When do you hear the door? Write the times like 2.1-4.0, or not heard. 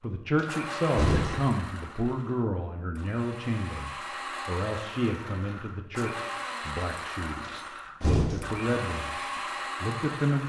0.3-1.5, 7.5-8.7.